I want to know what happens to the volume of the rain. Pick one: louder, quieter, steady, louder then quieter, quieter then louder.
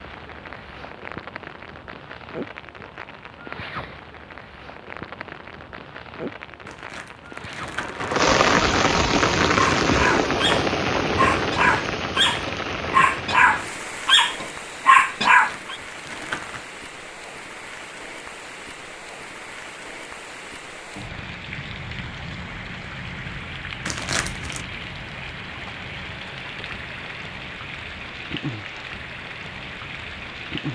louder then quieter.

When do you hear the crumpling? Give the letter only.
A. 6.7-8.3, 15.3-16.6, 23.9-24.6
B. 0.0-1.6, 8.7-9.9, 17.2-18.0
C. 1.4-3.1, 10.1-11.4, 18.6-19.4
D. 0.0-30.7
A.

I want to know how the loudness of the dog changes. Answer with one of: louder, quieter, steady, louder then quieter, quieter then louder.
louder.